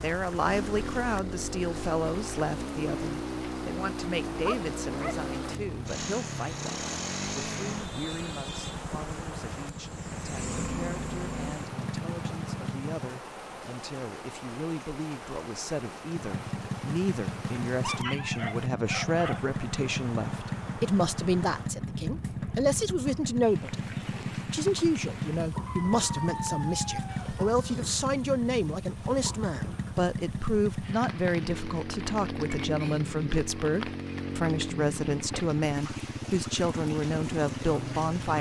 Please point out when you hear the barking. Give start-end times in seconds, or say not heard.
4.4-5.2, 17.8-19.5, 25.6-27.9.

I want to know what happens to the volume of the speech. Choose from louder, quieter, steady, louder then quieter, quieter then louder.
quieter then louder.